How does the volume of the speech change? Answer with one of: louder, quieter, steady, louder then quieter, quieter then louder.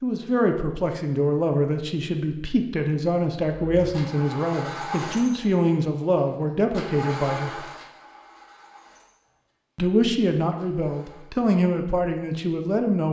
steady.